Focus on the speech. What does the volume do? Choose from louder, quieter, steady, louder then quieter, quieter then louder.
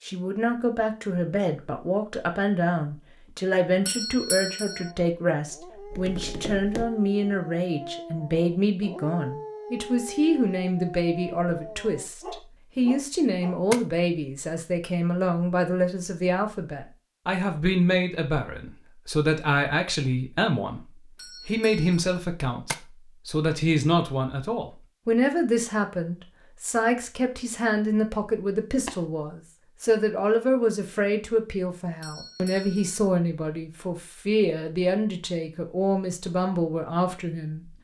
steady.